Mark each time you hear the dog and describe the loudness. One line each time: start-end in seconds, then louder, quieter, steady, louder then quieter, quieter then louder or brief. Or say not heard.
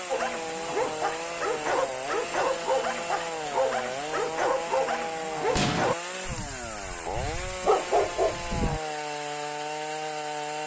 0.1-8.8 steady.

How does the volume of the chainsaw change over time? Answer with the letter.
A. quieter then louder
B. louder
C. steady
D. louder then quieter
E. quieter
C.